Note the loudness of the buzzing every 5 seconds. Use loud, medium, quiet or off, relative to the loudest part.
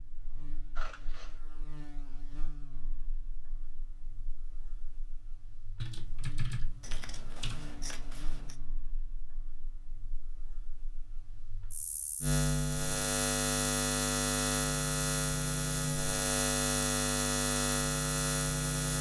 quiet, quiet, loud, loud.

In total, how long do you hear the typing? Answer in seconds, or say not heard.
2 s.